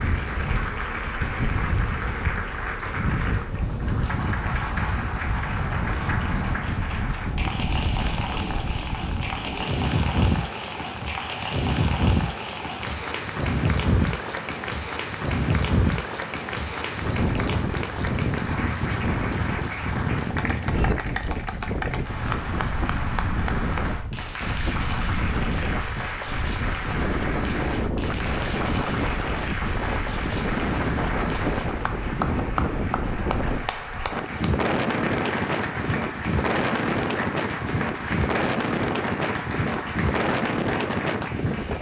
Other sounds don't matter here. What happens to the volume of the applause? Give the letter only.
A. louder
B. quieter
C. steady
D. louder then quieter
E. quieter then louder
C.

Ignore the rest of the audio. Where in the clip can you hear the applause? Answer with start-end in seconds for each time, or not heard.
0.0-41.7.